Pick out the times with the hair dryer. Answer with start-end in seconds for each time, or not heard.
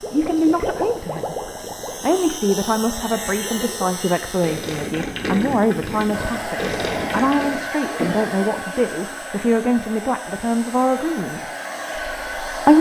6.1-12.7.